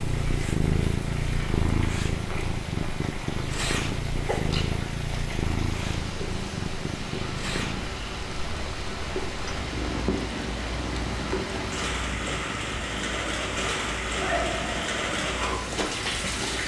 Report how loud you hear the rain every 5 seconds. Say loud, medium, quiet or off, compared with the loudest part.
medium, medium, loud, loud.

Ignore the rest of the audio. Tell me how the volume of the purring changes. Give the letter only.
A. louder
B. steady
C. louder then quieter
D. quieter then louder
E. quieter
E.